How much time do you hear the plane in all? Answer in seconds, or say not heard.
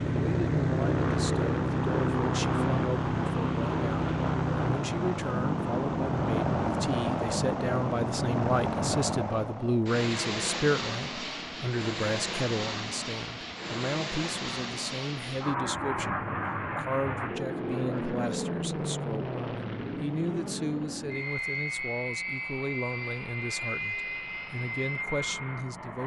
26 s.